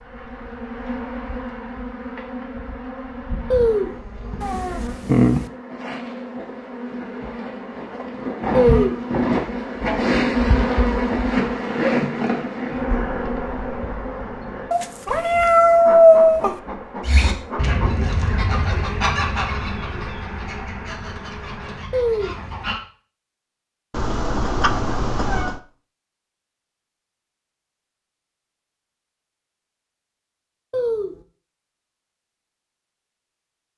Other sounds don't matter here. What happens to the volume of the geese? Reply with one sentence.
The loudness of the geese goes down.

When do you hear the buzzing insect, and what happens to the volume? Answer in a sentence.
You can hear the buzzing insect from 0.0 to 21.9 s, getting louder then quieter.